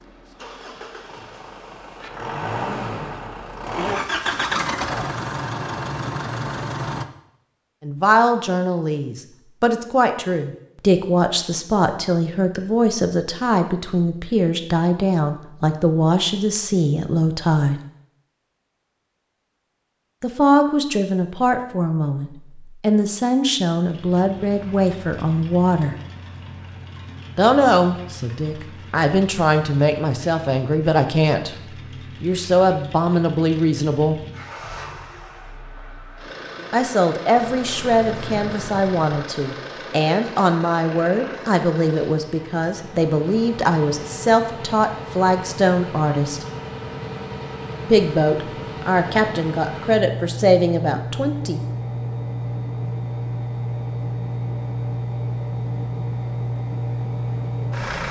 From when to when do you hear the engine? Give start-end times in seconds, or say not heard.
0.0-7.0, 23.8-58.0.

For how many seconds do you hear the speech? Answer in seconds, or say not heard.
36 s.